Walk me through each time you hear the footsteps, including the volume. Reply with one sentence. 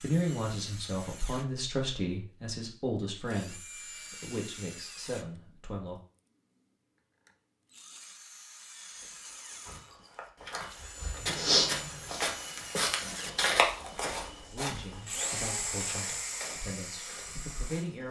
The footsteps can be heard from 9.0 to 18.0 s, getting louder then quieter.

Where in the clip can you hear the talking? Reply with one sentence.
The talking can be heard from 0.0 to 6.0 s and from 14.5 to 18.0 s.